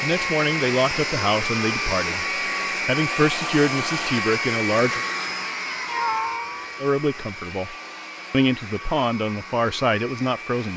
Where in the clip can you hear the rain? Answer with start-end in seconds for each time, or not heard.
not heard.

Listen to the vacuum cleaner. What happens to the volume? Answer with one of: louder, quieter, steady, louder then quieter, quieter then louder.
quieter.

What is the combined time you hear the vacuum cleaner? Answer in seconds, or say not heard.
11 s.